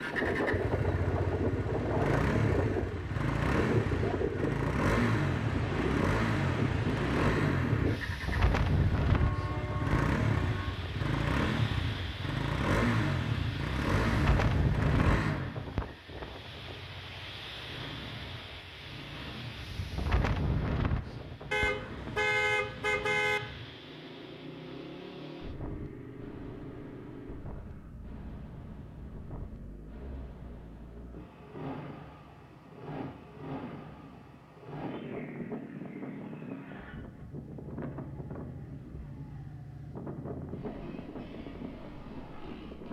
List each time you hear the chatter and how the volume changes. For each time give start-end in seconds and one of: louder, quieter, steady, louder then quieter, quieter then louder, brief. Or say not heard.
not heard.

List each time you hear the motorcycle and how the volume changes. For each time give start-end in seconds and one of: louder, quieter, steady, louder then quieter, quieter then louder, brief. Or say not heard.
0.0-42.8 quieter.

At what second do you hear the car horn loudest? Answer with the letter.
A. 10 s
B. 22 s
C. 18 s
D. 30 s
B.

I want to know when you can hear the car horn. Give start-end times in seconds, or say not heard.
9.1-10.8, 21.5-23.4.